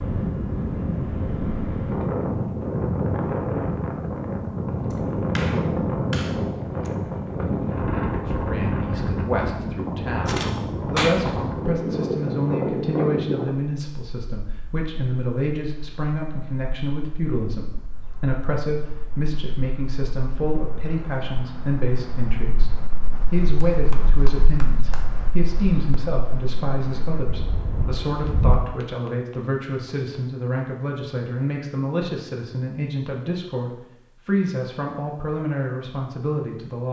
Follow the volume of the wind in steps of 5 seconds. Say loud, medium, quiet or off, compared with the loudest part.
loud, loud, loud, quiet, quiet, medium, off, off.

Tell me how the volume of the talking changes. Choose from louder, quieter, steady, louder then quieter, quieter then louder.
steady.